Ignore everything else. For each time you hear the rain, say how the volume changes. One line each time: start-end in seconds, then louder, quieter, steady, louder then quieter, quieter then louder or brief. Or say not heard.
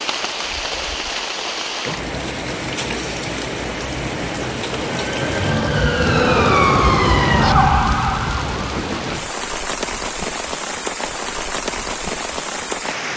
0.0-13.1 steady.